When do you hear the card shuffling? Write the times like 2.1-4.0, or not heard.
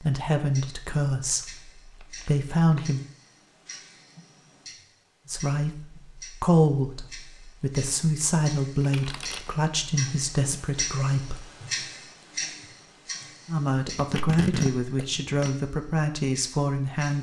1.2-2.8, 8.8-9.5, 13.9-15.5.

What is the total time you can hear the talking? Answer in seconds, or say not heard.
13 s.